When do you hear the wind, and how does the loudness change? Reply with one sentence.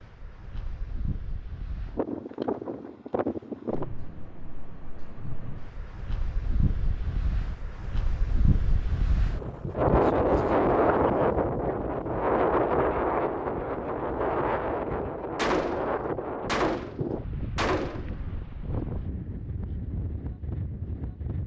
You can hear the wind from 0.0 to 21.4 s, getting louder then quieter.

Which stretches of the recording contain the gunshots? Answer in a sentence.
The gunshots can be heard from 15.3 to 18.2 s.